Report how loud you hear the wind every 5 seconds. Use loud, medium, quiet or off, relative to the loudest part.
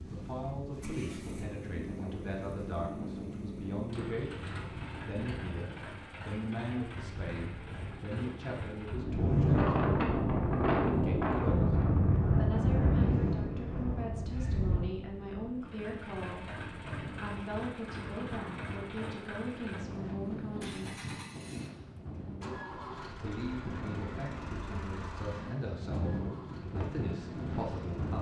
quiet, loud, loud, quiet, quiet, medium.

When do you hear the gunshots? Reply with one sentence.
The gunshots can't be heard in this clip.